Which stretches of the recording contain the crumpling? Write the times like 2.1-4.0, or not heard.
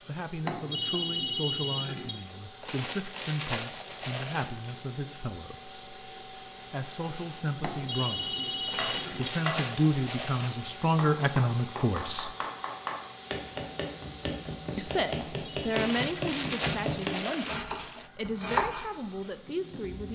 2.6-4.7, 8.7-10.7, 15.7-18.1.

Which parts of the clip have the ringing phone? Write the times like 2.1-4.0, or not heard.
0.4-2.1, 7.6-9.3, 15.2-15.7.